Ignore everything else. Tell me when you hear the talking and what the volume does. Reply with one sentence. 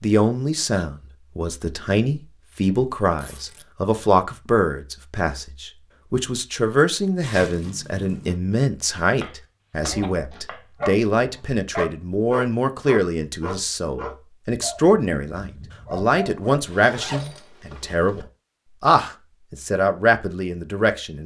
You can hear the talking from 0.0 to 21.2 s, at a steady volume.